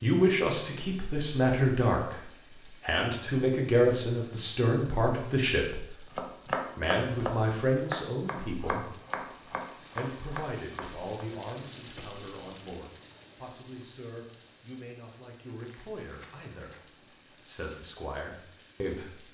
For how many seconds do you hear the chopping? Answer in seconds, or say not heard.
5 s.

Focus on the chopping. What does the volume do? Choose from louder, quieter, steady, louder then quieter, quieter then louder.
quieter.